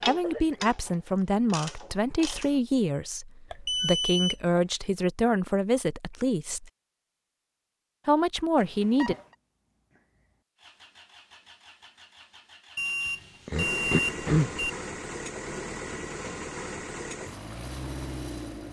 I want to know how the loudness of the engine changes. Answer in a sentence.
The volume of the engine goes up.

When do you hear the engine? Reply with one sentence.
You can hear the engine from 10.6 to 18.6 s.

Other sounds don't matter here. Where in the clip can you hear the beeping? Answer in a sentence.
The beeping can be heard from 3.5 to 4.6 s, from 8.6 to 9.2 s and from 12.8 to 14.7 s.